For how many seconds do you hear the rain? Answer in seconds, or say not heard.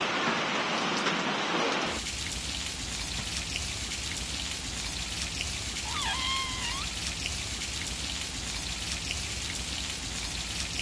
11 s.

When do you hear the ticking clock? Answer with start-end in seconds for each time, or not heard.
not heard.